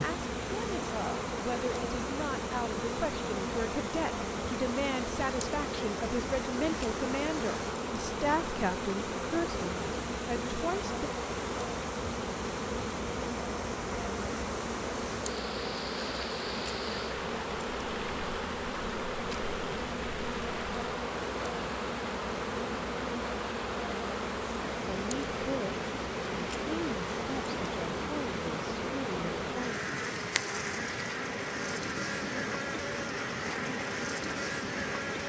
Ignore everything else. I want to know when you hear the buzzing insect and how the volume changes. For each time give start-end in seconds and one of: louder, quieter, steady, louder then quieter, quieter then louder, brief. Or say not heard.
0.0-35.2 steady.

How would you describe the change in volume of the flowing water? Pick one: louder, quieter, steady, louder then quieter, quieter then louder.
steady.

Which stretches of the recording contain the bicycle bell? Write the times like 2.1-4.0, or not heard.
not heard.